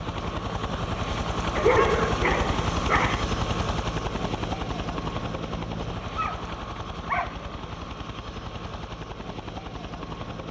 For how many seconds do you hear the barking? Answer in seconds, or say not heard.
3 s.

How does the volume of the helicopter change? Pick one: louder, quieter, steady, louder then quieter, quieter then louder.
quieter.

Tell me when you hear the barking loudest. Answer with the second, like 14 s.
2 s.